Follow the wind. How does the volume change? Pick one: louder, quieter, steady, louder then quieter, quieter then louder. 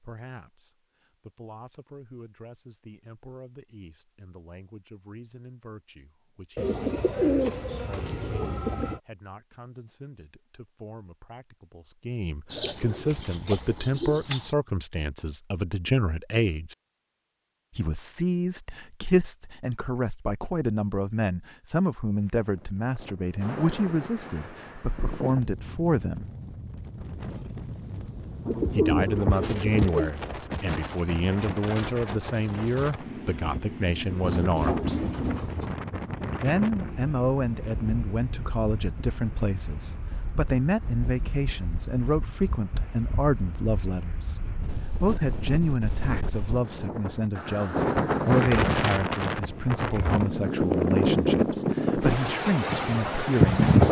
louder.